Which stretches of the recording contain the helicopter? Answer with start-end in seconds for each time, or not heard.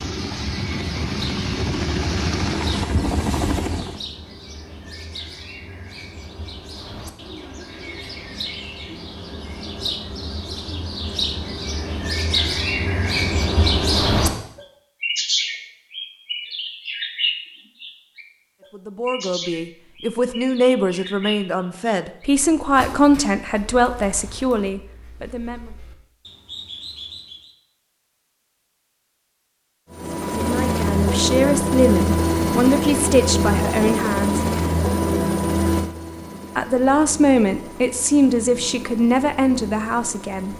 0.0-4.0, 29.9-40.5.